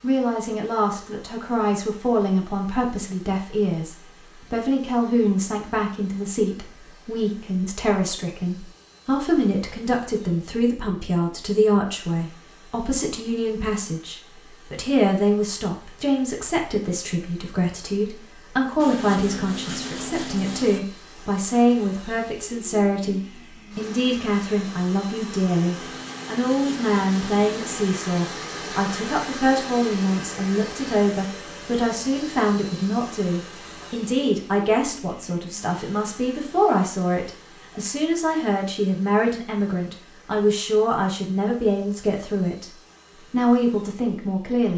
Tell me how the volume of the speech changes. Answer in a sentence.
The loudness of the speech stays about the same.